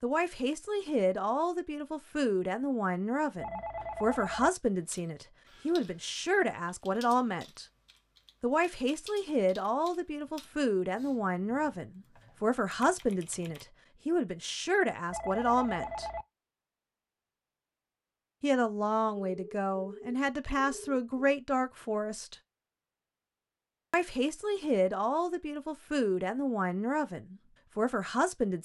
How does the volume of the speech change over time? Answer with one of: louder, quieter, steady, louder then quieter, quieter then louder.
steady.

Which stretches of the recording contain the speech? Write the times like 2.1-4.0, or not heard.
0.0-7.7, 8.4-16.1, 18.4-22.4, 23.9-28.6.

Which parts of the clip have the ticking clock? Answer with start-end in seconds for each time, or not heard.
not heard.